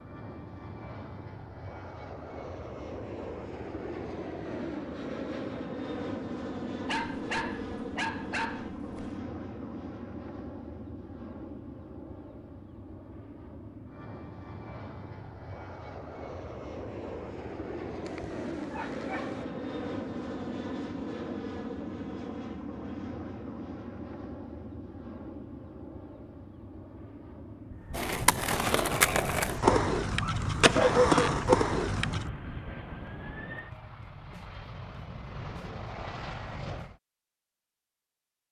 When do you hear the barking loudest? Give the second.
31 s.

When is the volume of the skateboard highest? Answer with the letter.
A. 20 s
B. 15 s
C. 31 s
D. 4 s
C.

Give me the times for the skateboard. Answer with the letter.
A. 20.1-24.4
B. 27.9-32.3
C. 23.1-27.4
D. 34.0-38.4
B.